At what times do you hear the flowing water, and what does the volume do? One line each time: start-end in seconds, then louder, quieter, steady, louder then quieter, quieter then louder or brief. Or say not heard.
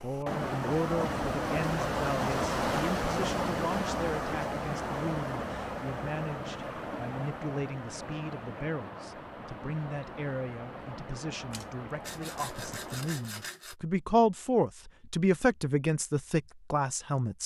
0.0-13.4 quieter.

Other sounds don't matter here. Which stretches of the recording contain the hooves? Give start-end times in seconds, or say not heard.
not heard.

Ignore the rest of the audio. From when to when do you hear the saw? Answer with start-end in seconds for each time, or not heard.
11.5-13.8.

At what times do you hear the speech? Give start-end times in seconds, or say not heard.
0.0-17.4.